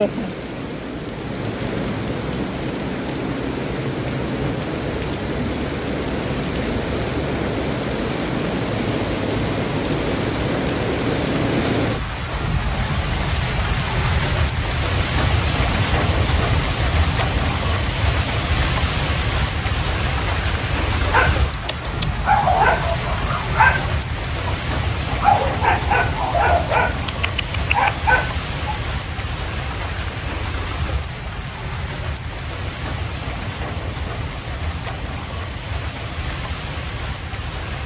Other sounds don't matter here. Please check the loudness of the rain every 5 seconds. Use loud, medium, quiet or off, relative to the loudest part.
loud, loud, loud, loud, loud, medium, medium, medium.